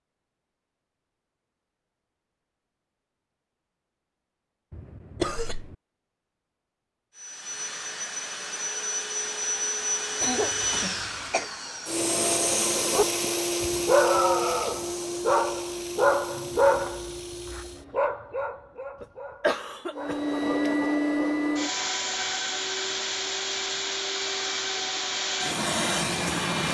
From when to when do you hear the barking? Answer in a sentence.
The barking can be heard from 12.9 to 20.2 s.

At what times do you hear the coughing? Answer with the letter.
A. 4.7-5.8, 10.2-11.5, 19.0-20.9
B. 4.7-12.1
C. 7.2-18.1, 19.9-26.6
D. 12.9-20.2
A.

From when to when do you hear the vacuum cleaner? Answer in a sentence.
The vacuum cleaner can be heard from 7.2 to 18.1 s and from 19.9 to 26.6 s.